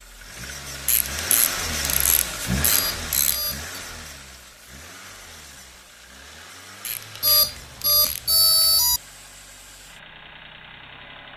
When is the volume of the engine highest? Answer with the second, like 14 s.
2 s.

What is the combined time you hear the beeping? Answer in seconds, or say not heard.
3 s.